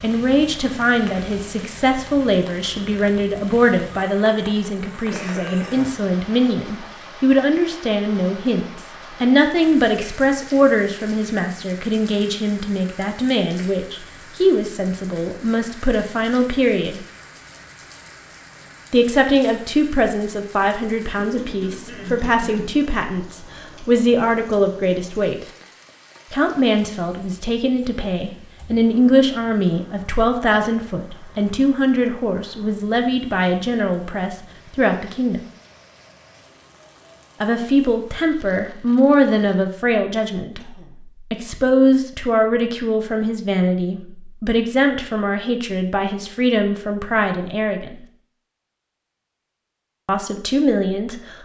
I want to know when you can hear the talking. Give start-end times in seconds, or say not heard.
0.0-17.0, 18.9-25.4, 26.3-35.4, 37.4-48.0, 50.0-51.4.